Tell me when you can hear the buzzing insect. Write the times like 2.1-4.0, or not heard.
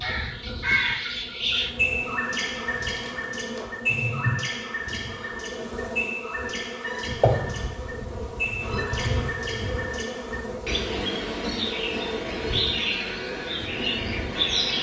0.0-14.7.